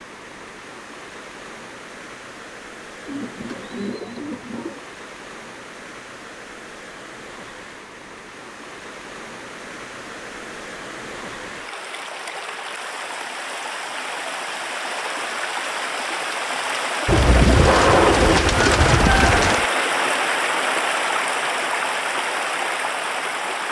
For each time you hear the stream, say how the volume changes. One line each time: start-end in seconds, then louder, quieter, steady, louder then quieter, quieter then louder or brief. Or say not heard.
0.0-23.6 louder.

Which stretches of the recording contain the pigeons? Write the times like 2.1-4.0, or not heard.
3.0-4.8, 17.1-19.6.